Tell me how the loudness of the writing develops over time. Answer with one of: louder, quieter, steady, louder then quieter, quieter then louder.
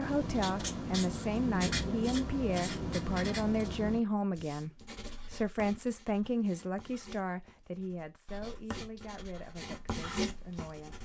quieter then louder.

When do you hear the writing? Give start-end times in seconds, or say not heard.
0.0-11.0.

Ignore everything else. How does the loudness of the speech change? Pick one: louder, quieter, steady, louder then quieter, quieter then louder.
quieter.